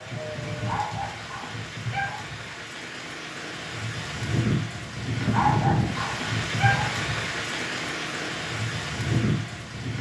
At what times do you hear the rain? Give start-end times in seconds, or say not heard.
0.0-9.9.